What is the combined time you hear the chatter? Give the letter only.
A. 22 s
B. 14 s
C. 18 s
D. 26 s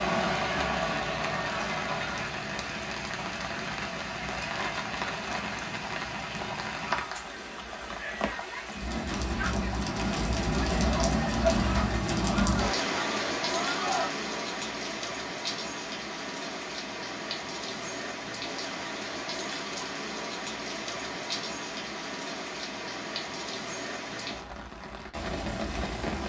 B.